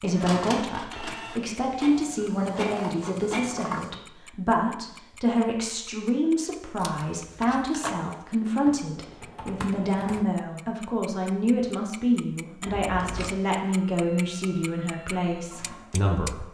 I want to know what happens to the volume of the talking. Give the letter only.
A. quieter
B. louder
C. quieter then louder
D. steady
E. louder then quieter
D.